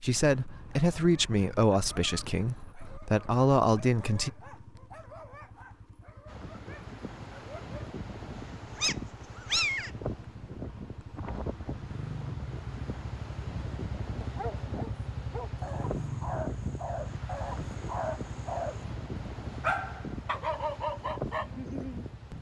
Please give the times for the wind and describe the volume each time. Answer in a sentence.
The wind can be heard from 6.2 to 22.3 s, at a steady volume.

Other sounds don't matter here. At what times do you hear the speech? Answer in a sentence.
The speech can be heard from 0.0 to 4.3 s.